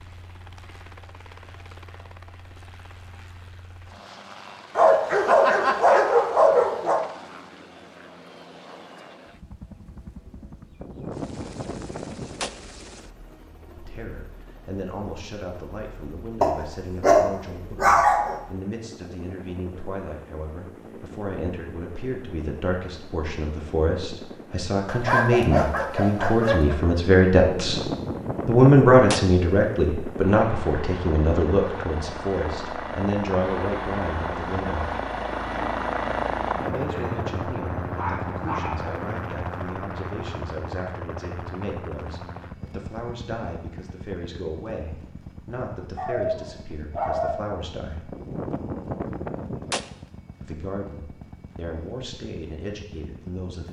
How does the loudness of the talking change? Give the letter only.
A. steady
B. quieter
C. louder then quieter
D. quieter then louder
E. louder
C.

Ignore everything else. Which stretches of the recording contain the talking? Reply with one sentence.
You can hear the talking from 13.8 to 27.8 s, from 28.4 to 34.9 s, from 36.6 to 48.1 s and from 50.4 to 53.6 s.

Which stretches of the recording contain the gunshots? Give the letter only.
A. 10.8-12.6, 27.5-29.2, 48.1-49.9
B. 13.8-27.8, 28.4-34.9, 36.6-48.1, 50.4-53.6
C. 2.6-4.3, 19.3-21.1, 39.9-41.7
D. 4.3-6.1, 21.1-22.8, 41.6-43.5
A.